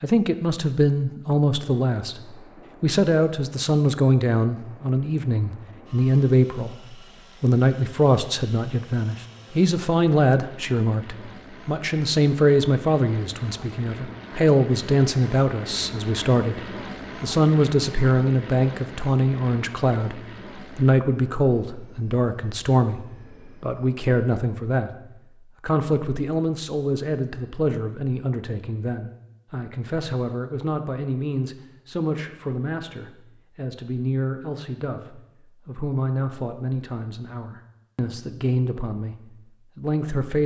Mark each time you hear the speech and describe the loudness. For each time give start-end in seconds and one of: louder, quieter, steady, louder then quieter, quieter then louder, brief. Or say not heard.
0.0-24.9 steady
25.6-39.1 steady
39.8-40.4 brief.